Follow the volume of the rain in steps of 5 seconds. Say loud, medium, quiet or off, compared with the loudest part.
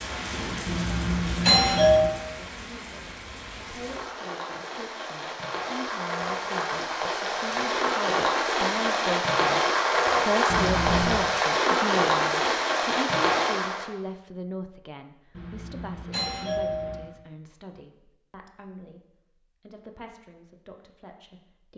quiet, loud, loud, off, off.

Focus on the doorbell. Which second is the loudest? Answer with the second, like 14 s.
2 s.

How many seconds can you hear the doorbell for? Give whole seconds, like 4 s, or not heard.
4 s.